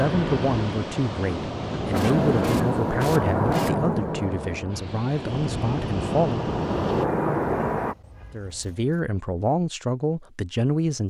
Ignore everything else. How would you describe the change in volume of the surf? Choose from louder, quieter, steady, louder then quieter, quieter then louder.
quieter then louder.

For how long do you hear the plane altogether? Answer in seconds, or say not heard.
6 s.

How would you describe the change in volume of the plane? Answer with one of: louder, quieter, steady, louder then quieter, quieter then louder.
quieter then louder.